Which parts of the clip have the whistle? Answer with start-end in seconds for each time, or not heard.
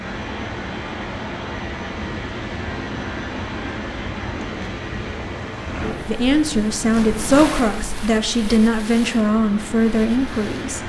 not heard.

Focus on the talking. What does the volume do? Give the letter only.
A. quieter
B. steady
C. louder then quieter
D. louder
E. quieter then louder
B.